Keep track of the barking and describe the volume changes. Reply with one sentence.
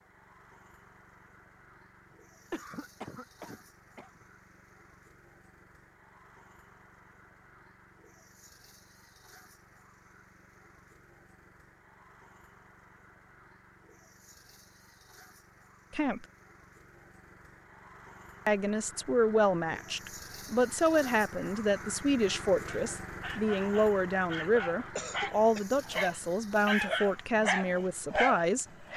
The volume of the barking goes up.